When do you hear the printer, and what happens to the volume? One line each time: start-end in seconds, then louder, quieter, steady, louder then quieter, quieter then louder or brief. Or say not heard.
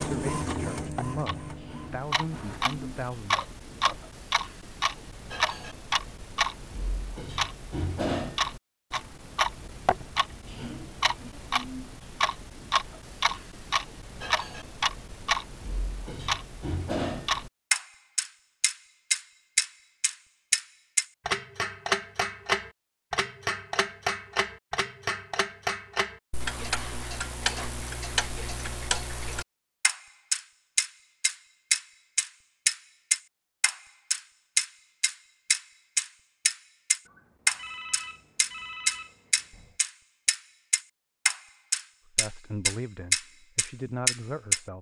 0.0-4.0 quieter.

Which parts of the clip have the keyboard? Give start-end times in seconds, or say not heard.
not heard.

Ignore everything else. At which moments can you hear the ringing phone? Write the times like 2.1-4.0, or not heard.
37.0-39.8.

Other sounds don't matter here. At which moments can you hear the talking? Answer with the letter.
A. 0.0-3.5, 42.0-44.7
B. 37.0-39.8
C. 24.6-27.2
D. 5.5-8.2
A.